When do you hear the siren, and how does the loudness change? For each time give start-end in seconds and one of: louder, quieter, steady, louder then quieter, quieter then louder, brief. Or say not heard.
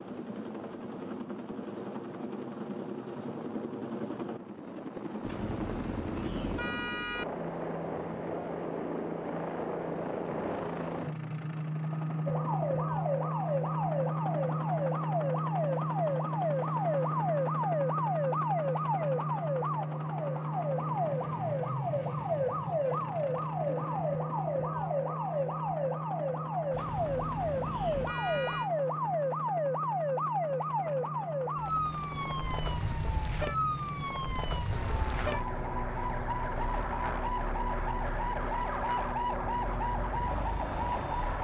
12.2-41.3 steady.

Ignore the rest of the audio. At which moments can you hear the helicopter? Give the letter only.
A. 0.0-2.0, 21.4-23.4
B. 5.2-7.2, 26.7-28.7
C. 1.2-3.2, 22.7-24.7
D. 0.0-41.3
D.